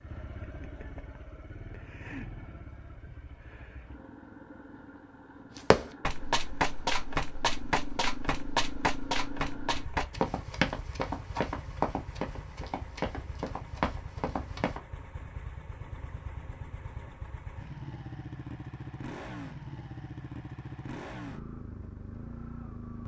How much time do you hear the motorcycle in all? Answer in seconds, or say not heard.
23 s.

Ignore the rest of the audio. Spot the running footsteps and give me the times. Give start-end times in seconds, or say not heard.
5.7-14.8.